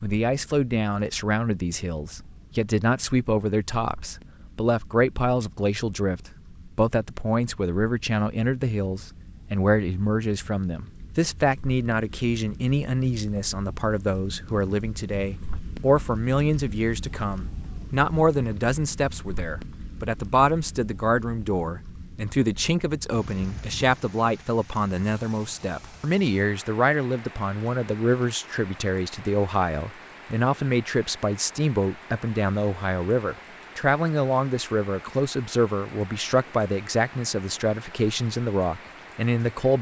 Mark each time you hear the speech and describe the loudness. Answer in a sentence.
You can hear the speech from 0.0 to 39.7 s, at a steady volume.